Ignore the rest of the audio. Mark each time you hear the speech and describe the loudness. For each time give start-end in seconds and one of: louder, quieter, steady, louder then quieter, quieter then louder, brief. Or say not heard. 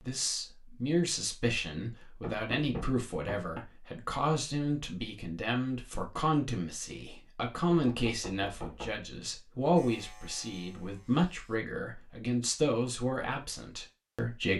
0.0-14.5 steady.